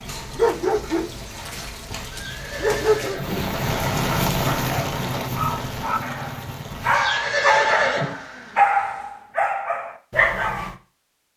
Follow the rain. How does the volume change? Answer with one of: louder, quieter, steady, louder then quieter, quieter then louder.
louder then quieter.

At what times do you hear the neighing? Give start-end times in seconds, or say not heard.
2.1-4.1, 6.9-8.2.